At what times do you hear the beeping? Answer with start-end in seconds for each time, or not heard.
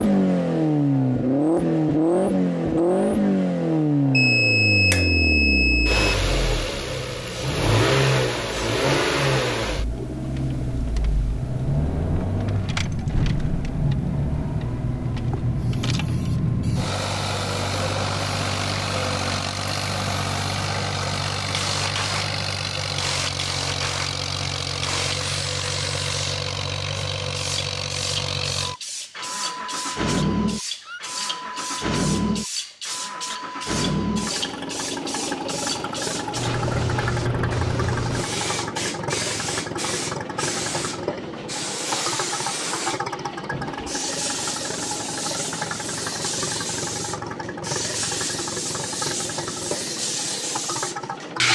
4.1-6.2.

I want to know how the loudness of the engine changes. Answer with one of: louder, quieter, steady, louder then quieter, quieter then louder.
quieter.